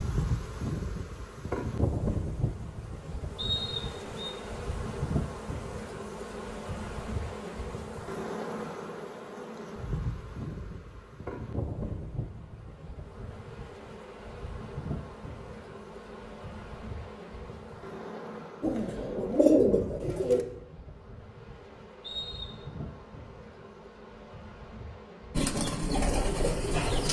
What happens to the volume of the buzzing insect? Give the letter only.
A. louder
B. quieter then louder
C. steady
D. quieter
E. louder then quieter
D.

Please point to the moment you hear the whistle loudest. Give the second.
4 s.